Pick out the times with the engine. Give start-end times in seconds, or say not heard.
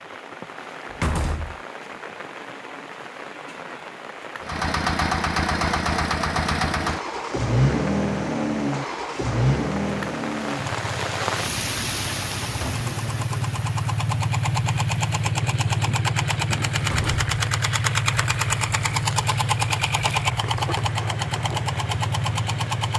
4.4-22.9.